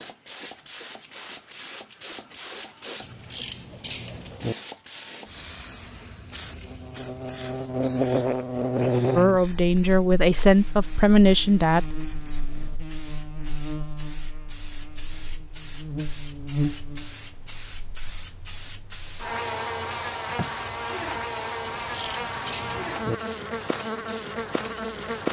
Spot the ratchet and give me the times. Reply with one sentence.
The ratchet can be heard from 3.0 to 4.5 s and from 21.6 to 23.1 s.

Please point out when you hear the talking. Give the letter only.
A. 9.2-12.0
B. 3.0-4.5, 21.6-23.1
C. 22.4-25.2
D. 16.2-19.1
A.